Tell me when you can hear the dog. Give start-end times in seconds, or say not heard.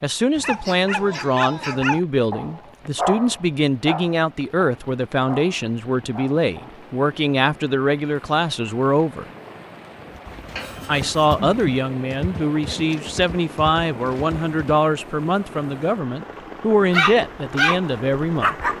0.3-6.8, 16.9-18.7.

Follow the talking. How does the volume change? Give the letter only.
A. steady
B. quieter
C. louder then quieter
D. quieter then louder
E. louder
A.